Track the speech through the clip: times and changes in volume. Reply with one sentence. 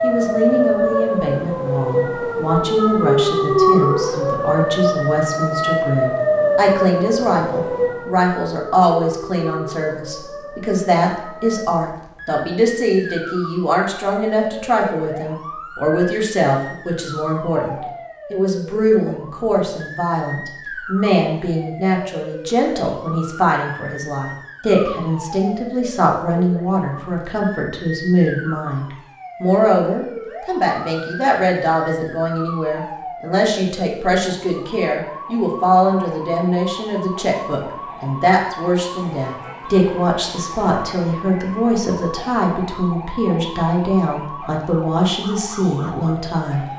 The speech can be heard from 0.0 to 46.6 s, at a steady volume.